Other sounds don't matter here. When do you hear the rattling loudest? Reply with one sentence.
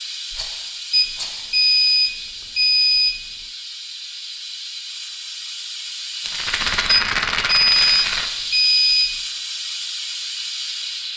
The volume of the rattling peaks at 7 seconds.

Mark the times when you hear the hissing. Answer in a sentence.
You can hear the hissing from 0.0 to 11.1 s.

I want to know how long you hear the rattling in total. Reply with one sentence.
The rattling can be heard for 3 seconds in total.